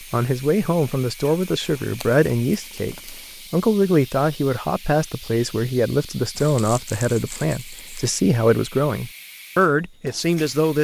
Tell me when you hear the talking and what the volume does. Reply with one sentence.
You can hear the talking from 0.0 to 10.8 s, at a steady volume.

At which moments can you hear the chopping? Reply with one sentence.
The chopping can't be heard in this clip.